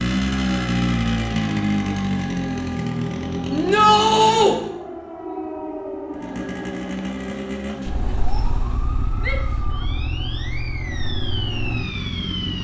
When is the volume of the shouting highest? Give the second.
4 s.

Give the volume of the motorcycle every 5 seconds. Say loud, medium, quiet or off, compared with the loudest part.
loud, medium, medium.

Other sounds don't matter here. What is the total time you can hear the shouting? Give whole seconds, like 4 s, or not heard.
2 s.